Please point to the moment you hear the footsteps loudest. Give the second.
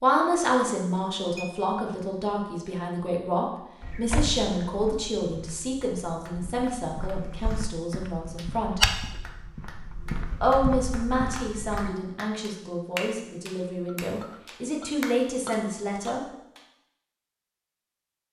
9 s.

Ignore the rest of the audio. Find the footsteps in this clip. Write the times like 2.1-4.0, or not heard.
3.8-11.9.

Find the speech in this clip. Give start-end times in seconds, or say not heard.
0.0-8.8, 10.4-16.2.